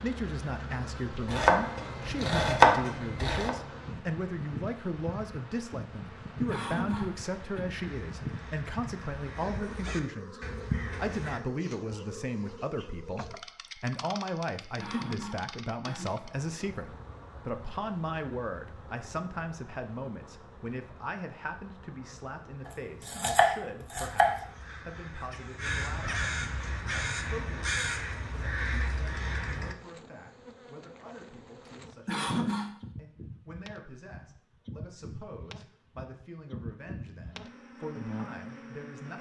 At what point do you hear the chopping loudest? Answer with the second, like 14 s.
3 s.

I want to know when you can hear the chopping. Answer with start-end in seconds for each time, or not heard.
1.2-3.5, 23.1-24.4.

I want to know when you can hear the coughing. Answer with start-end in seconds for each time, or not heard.
6.5-7.6, 14.8-16.1, 32.0-32.8.